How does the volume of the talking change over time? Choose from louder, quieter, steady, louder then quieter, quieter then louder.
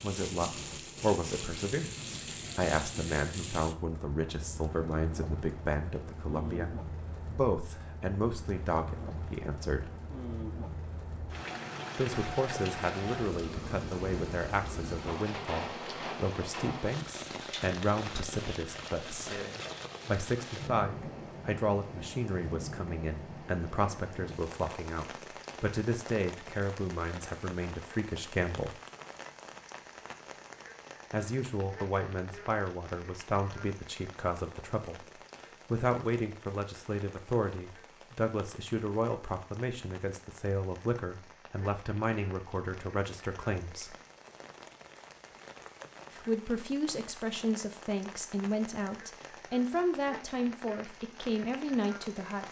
steady.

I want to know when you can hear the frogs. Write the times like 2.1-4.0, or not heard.
not heard.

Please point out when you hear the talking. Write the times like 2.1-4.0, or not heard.
0.0-9.9, 11.9-19.4, 20.1-28.8, 31.1-35.0, 35.7-44.0, 46.1-52.4.